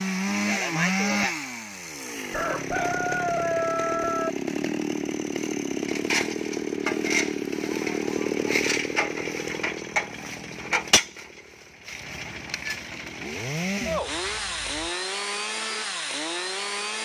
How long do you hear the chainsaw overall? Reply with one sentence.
You can hear the chainsaw for 17 seconds altogether.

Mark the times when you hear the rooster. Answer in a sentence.
The rooster can be heard from 2.3 to 4.3 s.